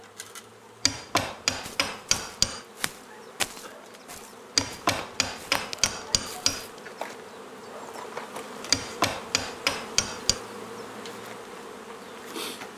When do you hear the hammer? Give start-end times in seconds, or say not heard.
0.8-2.6, 4.5-6.7, 8.7-10.4.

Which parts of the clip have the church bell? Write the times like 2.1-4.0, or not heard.
not heard.